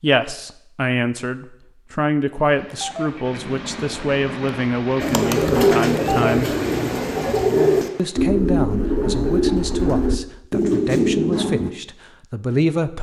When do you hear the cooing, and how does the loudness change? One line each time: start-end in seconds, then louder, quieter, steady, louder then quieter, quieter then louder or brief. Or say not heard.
5.0-11.7 steady.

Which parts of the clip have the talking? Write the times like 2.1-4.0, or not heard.
0.0-6.5, 8.0-12.9.